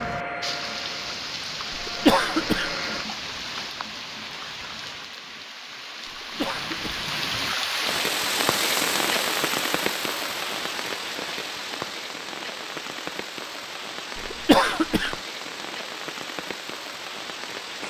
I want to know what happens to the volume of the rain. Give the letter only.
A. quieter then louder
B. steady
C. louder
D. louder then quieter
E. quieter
D.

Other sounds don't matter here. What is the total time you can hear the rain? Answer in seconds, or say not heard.
18 s.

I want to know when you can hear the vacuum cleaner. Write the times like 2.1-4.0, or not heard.
0.0-3.0.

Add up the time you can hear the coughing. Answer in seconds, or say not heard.
3 s.